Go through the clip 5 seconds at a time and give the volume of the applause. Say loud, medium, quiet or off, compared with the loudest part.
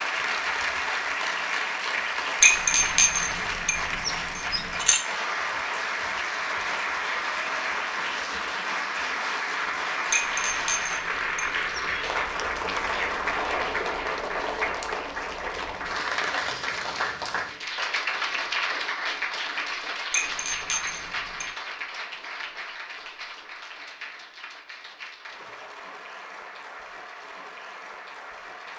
loud, loud, loud, loud, medium, quiet.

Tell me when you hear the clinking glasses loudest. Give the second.
3 s.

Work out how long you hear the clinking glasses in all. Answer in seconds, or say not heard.
6 s.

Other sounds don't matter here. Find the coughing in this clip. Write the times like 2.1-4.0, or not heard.
not heard.